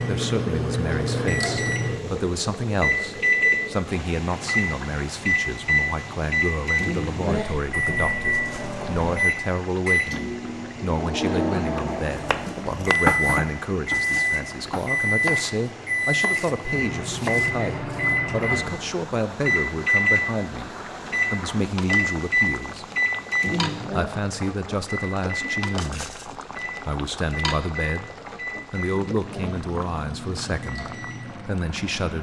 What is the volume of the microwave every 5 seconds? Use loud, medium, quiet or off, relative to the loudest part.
loud, loud, loud, loud, loud, medium, quiet.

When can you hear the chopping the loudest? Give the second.
13 s.